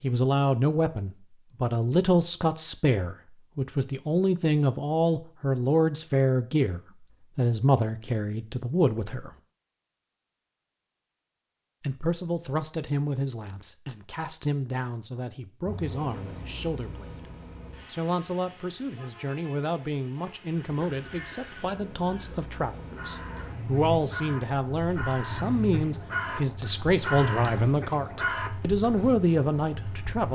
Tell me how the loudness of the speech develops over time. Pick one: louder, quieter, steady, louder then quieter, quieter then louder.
quieter then louder.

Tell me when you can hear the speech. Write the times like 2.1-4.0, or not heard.
0.0-9.3, 11.8-17.1, 17.9-30.3.